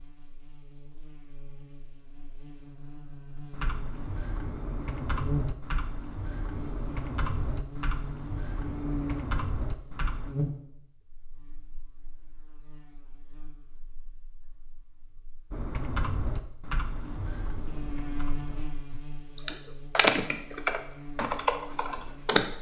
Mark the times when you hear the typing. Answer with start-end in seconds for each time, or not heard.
3.5-10.3, 15.5-22.5.